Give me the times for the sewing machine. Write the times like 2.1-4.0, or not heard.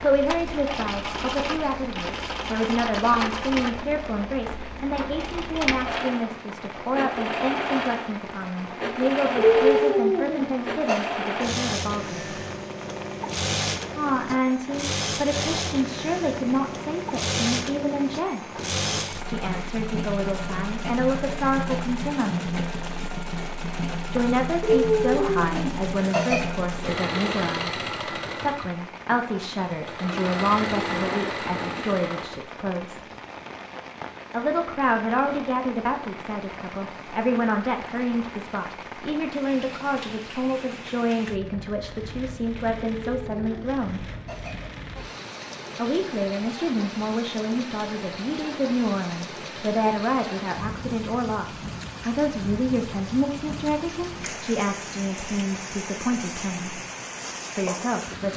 0.0-32.5.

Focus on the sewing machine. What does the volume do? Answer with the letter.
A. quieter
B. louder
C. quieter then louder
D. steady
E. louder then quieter
D.